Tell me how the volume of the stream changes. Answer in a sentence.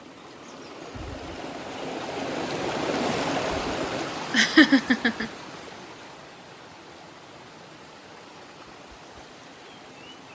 The loudness of the stream goes up, then down.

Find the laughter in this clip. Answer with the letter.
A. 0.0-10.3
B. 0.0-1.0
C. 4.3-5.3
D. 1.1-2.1
C.